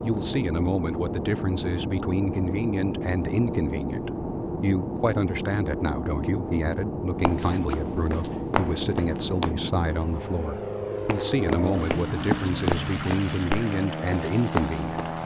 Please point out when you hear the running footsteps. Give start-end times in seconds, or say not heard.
7.2-9.6, 11.1-15.2.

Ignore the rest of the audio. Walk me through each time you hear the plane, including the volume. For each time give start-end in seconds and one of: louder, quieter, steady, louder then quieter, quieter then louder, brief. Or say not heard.
0.0-15.2 steady.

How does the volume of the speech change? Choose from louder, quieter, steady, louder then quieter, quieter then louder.
steady.